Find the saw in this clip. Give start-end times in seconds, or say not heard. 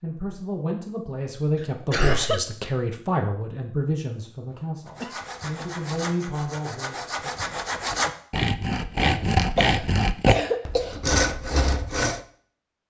4.8-12.2.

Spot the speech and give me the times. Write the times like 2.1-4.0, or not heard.
0.0-7.3.